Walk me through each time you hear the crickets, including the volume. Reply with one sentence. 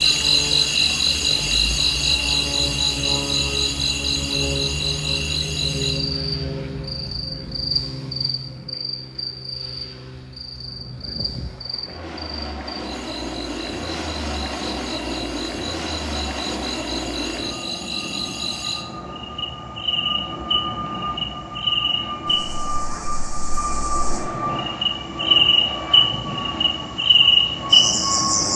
You can hear the crickets from 0.0 to 28.5 s, getting quieter then louder.